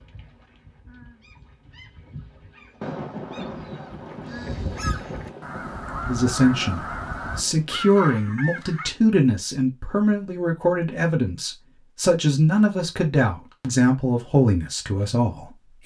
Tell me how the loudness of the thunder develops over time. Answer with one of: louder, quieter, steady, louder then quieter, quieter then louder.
quieter.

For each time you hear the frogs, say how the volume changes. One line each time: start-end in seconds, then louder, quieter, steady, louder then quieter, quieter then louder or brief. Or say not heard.
not heard.